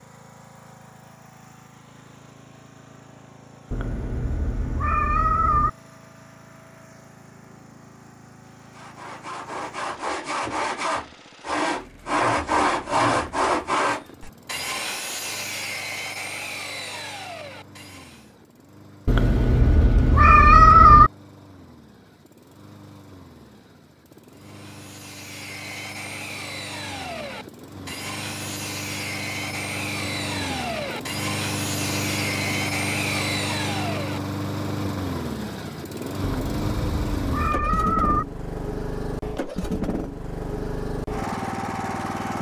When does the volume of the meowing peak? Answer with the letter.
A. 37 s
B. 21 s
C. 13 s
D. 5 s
B.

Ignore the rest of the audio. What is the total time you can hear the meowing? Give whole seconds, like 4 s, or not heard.
6 s.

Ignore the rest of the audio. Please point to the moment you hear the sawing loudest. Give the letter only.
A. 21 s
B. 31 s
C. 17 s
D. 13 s
D.